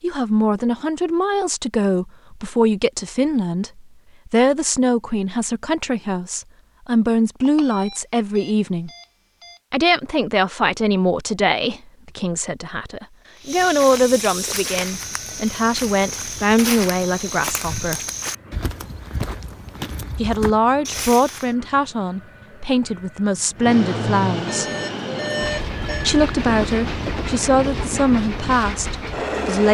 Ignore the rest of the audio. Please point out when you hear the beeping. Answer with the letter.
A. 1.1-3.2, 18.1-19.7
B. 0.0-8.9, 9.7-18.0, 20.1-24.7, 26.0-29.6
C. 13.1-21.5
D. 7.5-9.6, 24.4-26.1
D.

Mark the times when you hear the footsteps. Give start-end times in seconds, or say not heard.
13.1-21.5.